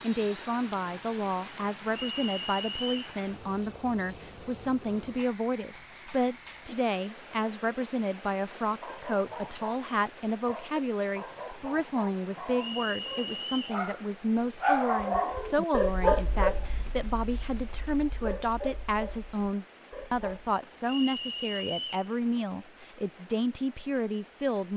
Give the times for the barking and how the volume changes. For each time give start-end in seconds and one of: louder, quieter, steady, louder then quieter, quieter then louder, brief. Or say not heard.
8.8-9.8 brief
10.4-20.3 louder then quieter.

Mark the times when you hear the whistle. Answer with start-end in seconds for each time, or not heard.
2.1-3.0, 12.6-13.8, 20.9-22.1.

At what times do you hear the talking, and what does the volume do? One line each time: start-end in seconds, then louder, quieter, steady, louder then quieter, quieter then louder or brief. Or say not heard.
0.0-24.7 steady.